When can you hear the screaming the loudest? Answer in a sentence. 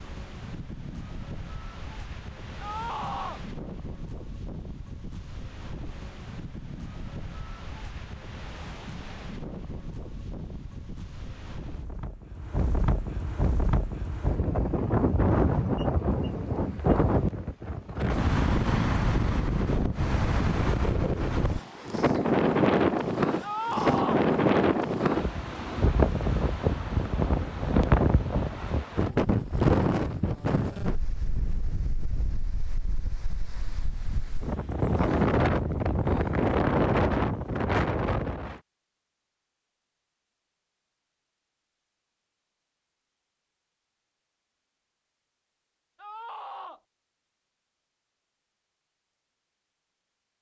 The volume of the screaming peaks at 24 seconds.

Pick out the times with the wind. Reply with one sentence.
The wind can be heard from 0.0 to 38.6 s.